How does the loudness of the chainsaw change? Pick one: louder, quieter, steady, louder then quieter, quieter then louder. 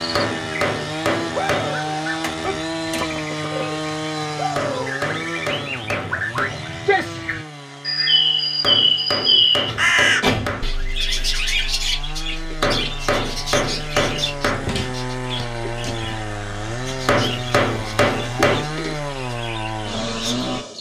quieter then louder.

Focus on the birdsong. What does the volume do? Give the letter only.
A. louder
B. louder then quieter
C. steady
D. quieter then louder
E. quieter
B.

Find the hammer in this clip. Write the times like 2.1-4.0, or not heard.
0.1-1.8, 4.5-6.6, 8.6-10.8, 12.6-14.7, 17.1-18.6.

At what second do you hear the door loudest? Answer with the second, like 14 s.
10 s.